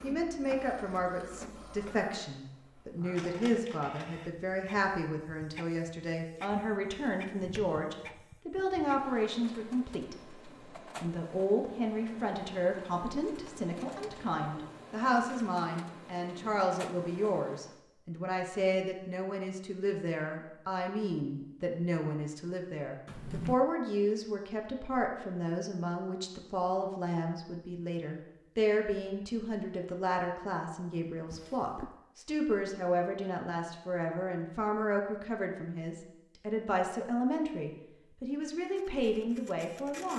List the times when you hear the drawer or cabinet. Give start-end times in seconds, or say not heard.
6.9-8.2, 23.1-23.6, 31.3-32.0.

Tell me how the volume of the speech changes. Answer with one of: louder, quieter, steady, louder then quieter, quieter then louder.
steady.